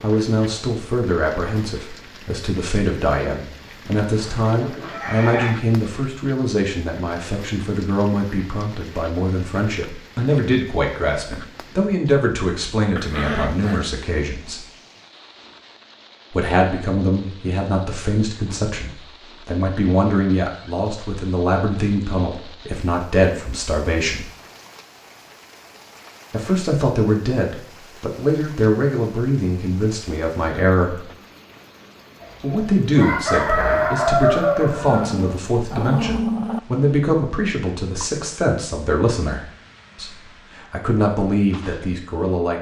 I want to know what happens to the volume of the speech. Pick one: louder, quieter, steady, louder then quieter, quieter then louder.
steady.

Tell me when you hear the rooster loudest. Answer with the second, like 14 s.
34 s.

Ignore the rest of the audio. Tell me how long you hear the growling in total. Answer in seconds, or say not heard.
3 s.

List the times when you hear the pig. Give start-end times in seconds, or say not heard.
not heard.